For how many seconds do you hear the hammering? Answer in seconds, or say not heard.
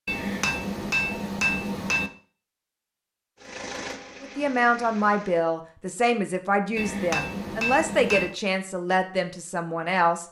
4 s.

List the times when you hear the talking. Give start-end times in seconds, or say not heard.
4.2-10.2.